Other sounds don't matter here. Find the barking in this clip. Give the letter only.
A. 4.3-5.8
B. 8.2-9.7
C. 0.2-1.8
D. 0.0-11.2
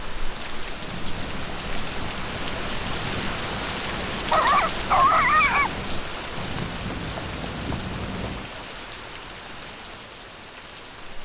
A.